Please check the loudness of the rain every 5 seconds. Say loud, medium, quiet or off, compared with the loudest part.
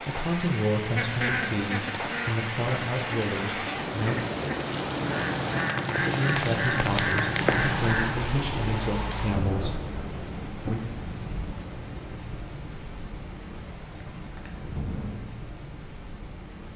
loud, loud, medium, medium.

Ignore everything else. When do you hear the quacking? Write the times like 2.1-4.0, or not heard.
0.9-8.1.